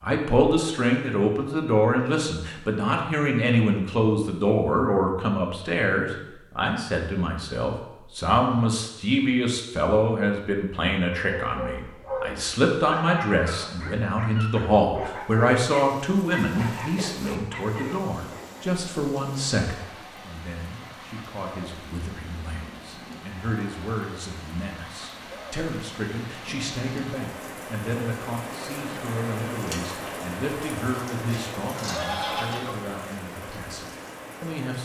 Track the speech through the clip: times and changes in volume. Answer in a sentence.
You can hear the speech from 0.0 to 34.8 s, getting quieter.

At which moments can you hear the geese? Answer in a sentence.
You can hear the geese from 31.2 to 32.8 s.